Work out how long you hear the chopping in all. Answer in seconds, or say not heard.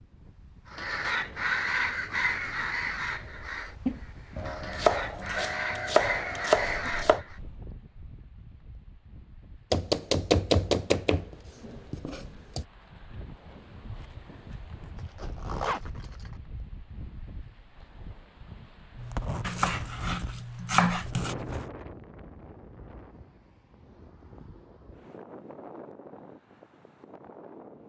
8 s.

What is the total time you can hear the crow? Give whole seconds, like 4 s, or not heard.
7 s.